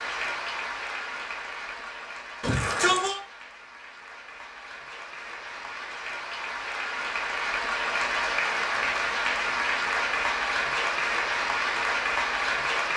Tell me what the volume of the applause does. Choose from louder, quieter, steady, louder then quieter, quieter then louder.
quieter then louder.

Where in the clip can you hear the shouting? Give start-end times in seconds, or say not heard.
2.4-3.2.